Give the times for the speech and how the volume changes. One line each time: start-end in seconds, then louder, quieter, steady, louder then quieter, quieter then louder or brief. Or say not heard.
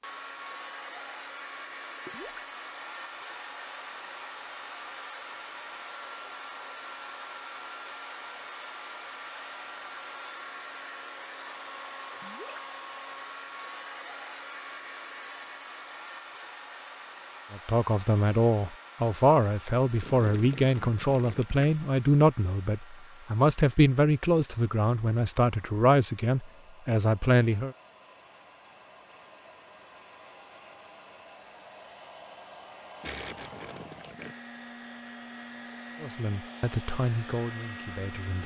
17.5-27.8 steady
36.0-38.4 brief.